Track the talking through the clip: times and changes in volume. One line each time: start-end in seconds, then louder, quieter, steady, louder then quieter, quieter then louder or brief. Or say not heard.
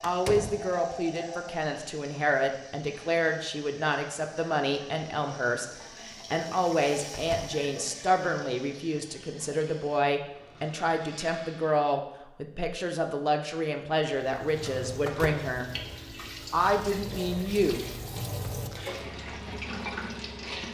0.0-15.7 steady
16.5-17.8 brief.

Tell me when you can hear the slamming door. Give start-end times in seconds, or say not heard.
0.0-0.7, 7.1-7.6, 14.6-15.3.